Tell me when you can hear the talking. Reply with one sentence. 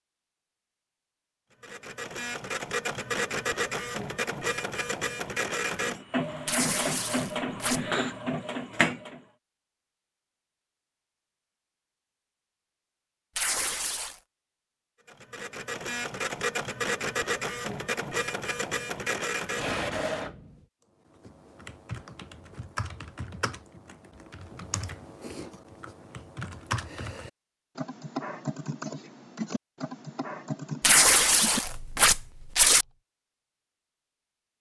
You can't hear the talking here.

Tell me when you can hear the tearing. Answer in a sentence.
You can hear the tearing from 6.5 to 7.8 s, from 13.3 to 14.2 s and from 30.8 to 32.9 s.